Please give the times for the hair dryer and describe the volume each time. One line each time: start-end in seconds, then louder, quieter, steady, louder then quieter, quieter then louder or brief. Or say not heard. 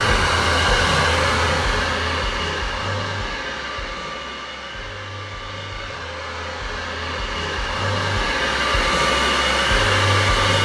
0.0-10.6 quieter then louder.